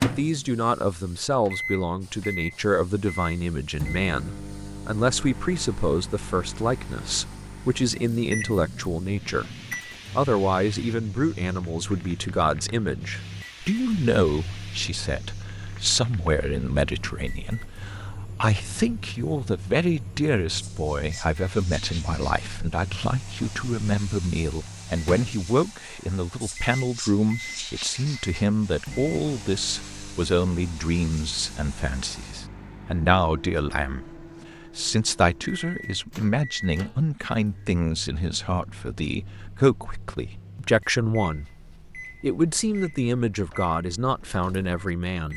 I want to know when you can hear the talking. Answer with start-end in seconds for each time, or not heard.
0.0-9.4, 10.2-41.5, 42.2-45.3.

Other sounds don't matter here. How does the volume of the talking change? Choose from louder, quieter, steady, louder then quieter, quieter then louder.
steady.